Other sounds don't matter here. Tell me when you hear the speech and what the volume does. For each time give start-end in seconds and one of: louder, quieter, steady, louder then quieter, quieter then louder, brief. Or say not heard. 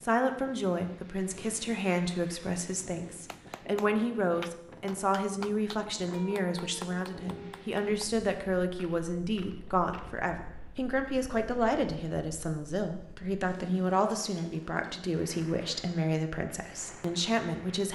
0.0-17.9 steady.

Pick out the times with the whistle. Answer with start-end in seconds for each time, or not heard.
not heard.